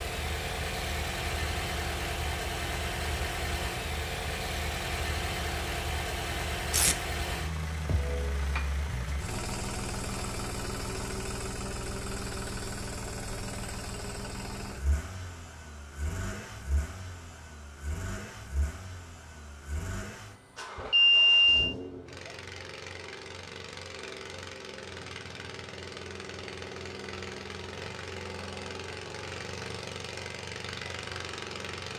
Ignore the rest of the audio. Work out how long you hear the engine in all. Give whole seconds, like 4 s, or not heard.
32 s.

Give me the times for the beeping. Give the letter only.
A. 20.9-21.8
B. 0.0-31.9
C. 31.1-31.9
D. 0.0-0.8
A.